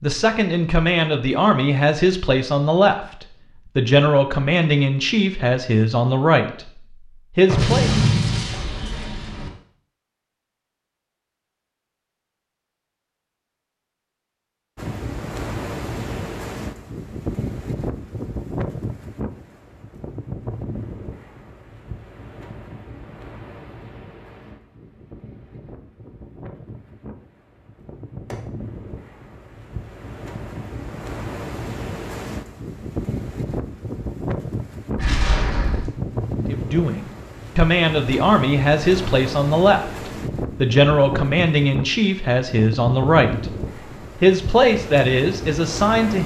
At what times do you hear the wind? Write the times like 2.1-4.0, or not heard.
14.8-46.2.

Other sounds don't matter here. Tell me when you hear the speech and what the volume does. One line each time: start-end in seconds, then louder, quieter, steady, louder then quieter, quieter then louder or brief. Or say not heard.
0.0-7.9 steady
36.5-46.2 steady.